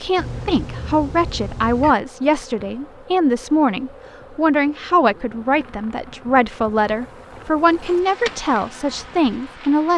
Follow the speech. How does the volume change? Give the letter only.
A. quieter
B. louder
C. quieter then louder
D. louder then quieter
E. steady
E.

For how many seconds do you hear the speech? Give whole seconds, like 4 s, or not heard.
10 s.